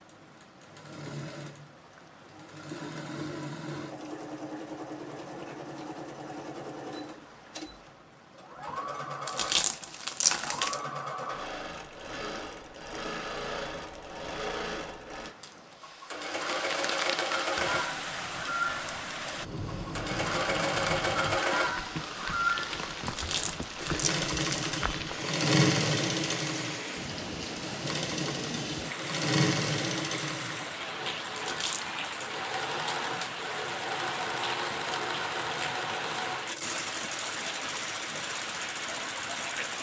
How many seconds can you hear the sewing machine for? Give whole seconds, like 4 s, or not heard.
40 s.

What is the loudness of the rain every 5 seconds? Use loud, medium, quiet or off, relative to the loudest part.
quiet, quiet, quiet, loud, loud, loud, loud, loud.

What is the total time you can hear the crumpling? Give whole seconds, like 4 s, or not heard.
4 s.